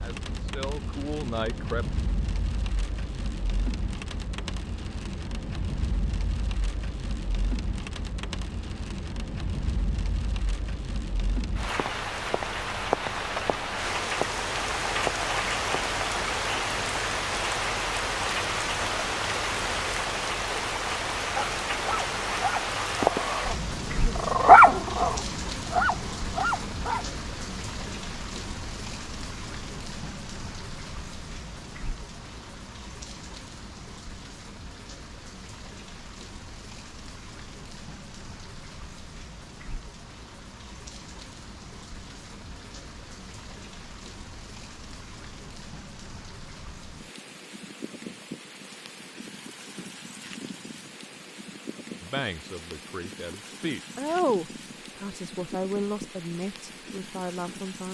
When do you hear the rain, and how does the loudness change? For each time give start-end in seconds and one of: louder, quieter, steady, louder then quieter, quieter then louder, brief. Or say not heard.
0.0-57.8 louder then quieter.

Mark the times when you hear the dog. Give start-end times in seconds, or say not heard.
21.4-27.1.